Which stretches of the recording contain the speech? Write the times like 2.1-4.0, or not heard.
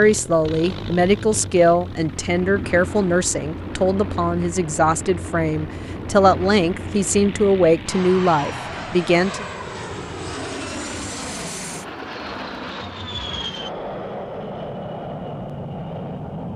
0.0-9.4.